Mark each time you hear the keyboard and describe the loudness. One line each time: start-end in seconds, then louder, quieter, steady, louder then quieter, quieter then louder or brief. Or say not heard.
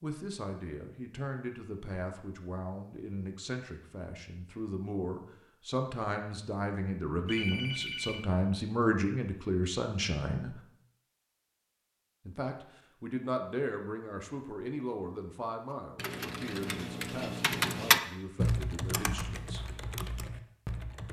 15.9-21.0 louder then quieter.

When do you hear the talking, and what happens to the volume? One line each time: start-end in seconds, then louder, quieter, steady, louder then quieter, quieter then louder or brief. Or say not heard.
0.0-10.6 louder
12.2-19.6 quieter.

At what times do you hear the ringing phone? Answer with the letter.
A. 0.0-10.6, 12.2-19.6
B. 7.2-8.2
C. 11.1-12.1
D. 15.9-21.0
B.